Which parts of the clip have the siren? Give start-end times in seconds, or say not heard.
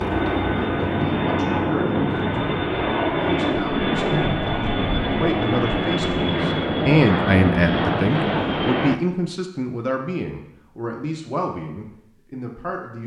not heard.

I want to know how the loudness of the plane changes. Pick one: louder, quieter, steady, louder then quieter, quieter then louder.
steady.